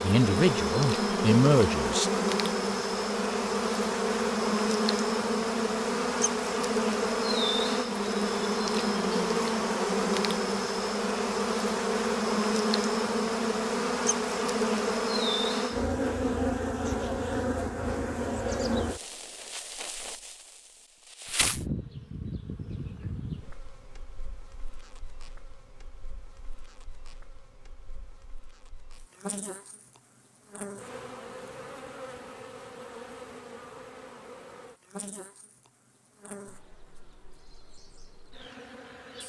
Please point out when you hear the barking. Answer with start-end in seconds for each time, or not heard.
not heard.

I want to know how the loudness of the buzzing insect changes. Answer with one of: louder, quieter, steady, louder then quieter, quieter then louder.
quieter.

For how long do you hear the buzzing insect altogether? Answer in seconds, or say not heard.
39 s.